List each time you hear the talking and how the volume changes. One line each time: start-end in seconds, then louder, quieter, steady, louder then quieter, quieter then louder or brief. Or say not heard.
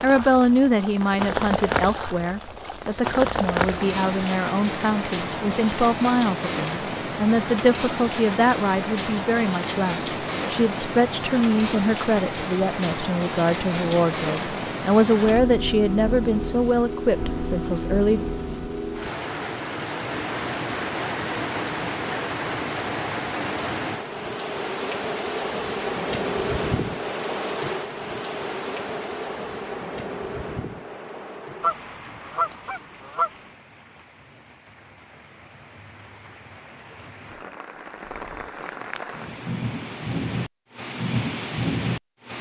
0.0-18.2 steady.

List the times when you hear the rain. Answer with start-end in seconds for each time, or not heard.
0.0-42.3.